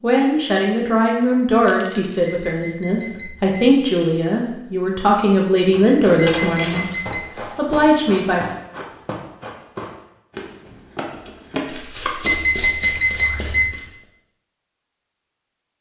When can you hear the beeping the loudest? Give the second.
13 s.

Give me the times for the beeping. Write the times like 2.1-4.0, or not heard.
2.2-3.8, 6.3-7.2, 12.2-13.8.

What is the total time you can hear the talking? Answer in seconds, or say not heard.
8 s.